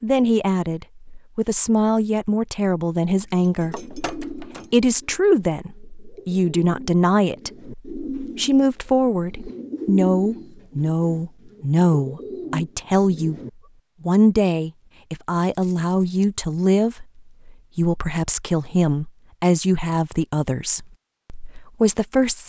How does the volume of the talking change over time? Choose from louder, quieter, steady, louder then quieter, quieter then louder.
steady.